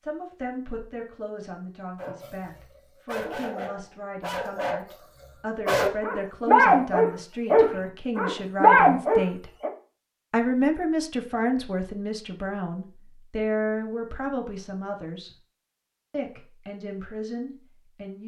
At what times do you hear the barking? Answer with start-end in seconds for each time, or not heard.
1.9-9.7.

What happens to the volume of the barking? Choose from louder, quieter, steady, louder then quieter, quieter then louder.
louder.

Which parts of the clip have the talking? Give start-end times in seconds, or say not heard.
0.0-9.5, 10.3-15.3, 16.1-18.2.